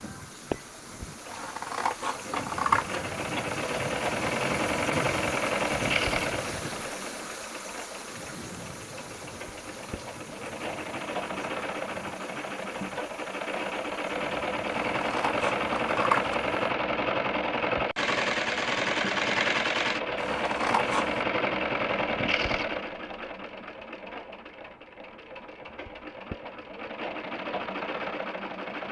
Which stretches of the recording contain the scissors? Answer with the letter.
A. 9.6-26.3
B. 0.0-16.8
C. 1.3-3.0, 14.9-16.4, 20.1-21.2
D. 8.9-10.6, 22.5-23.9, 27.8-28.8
C.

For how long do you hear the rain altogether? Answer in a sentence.
You can hear the rain for 17 seconds altogether.